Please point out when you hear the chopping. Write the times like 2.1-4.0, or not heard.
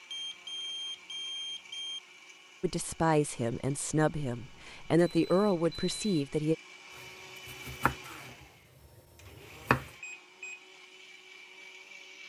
7.0-9.9.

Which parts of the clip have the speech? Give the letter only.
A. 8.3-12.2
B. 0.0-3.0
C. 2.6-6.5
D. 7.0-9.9
C.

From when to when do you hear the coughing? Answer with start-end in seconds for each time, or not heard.
not heard.